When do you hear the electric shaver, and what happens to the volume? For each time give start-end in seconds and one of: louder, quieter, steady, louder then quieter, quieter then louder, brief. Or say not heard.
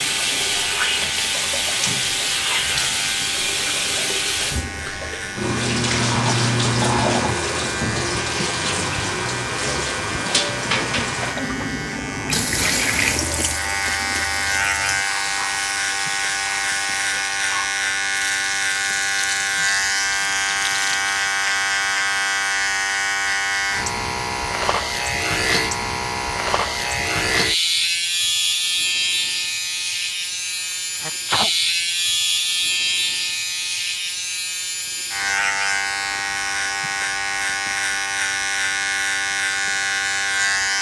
0.0-40.7 louder.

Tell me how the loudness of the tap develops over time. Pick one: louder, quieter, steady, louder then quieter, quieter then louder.
quieter.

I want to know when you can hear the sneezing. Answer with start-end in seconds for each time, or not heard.
30.6-31.5.